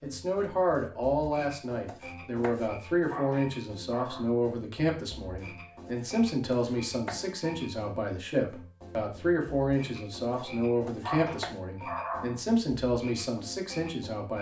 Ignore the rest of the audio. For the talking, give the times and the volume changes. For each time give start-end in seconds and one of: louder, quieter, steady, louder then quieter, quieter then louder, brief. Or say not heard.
0.0-14.3 steady.